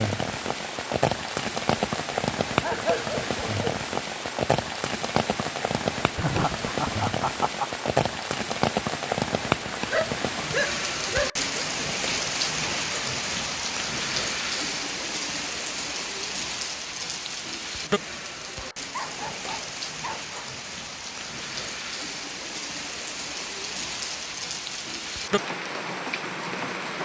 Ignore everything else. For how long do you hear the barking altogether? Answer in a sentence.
The barking can be heard for 5 seconds in total.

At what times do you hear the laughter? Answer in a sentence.
The laughter can be heard from 6.2 to 7.7 s.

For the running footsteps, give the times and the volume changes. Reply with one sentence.
You can't hear the running footsteps here.